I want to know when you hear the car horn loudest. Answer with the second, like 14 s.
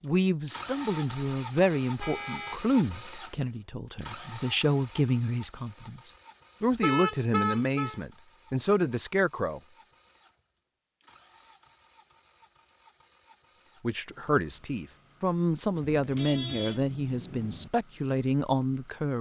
7 s.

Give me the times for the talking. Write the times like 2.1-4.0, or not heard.
0.0-9.6, 13.8-19.1.